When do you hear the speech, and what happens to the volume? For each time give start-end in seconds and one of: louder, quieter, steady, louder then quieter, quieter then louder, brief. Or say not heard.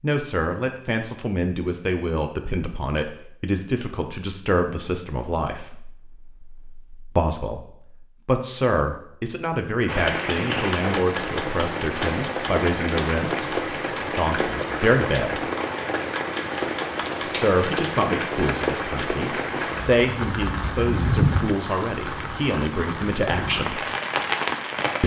0.0-15.4 steady
17.2-23.8 steady.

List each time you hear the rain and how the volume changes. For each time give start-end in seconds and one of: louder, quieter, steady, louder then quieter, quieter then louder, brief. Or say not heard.
9.8-25.0 steady.